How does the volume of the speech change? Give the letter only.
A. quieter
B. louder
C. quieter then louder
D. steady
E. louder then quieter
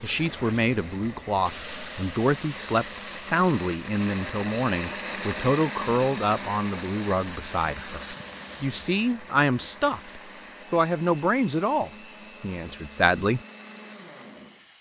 D.